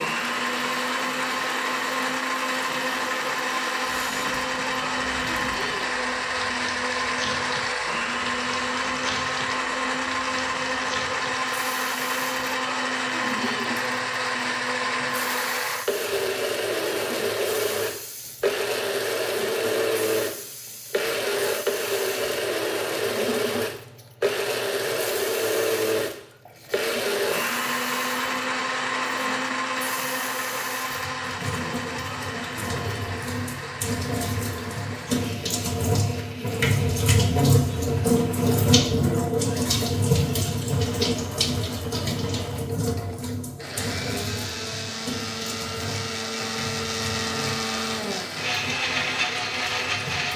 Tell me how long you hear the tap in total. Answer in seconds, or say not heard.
50 s.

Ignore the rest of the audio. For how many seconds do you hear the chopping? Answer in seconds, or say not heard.
not heard.